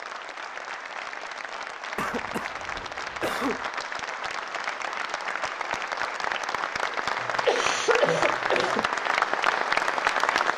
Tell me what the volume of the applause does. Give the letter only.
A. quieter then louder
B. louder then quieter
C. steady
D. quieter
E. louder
E.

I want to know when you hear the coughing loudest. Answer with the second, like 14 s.
8 s.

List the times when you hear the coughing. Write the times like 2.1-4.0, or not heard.
1.9-3.7, 7.2-8.8.